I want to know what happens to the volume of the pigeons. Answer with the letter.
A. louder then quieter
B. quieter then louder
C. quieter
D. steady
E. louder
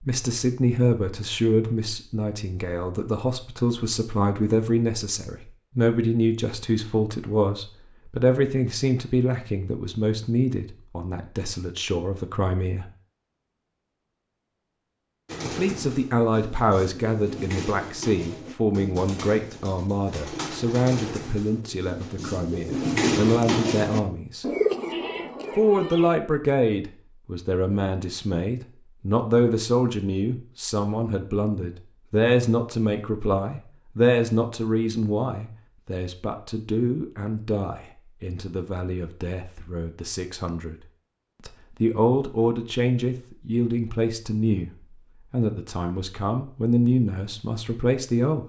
E.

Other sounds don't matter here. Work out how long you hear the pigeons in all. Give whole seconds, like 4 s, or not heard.
11 s.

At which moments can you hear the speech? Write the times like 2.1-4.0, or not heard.
0.0-12.8, 15.4-24.4, 25.6-40.8, 41.5-44.7, 45.3-48.4.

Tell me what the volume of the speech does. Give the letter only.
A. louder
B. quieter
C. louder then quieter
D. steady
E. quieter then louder
D.